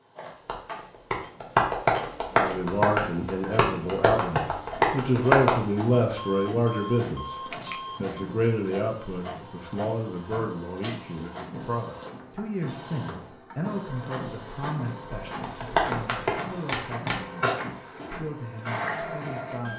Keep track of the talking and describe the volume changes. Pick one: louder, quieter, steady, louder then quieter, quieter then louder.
quieter.